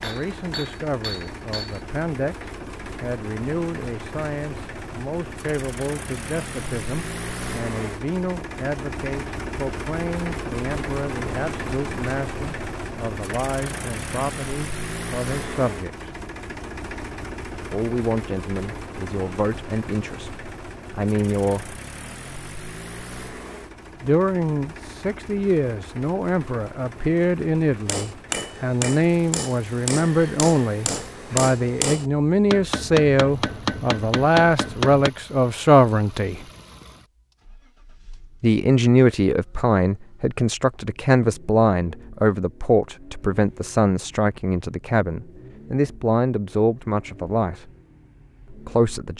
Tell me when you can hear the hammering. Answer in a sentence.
You can hear the hammering from 0.0 to 1.8 s and from 27.9 to 35.1 s.